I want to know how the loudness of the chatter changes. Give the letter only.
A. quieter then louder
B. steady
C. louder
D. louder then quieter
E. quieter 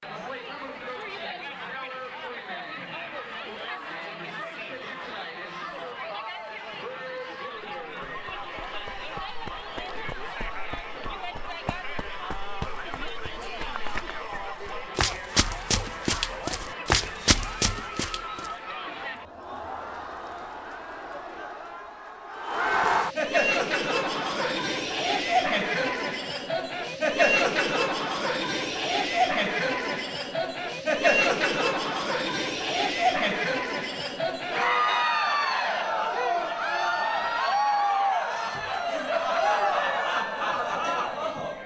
C.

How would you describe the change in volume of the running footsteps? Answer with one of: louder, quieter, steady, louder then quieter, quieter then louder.
louder.